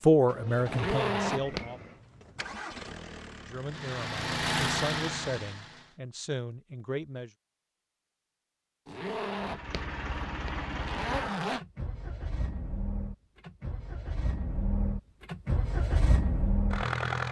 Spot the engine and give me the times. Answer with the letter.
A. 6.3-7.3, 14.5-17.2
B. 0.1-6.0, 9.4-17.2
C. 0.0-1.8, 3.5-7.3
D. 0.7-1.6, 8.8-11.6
B.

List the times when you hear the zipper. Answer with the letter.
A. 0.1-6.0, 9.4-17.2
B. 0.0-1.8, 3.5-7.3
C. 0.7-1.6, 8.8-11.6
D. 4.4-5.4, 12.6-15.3
C.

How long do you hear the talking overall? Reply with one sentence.
You can hear the talking for 6 seconds altogether.